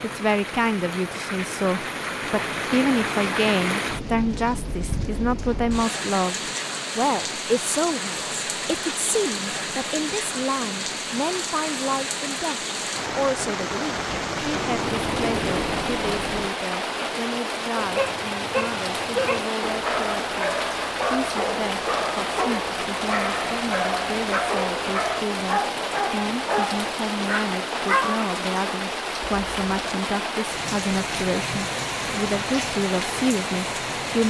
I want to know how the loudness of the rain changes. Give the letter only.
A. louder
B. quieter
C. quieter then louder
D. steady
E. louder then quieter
D.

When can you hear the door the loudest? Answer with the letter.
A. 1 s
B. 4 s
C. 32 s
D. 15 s
D.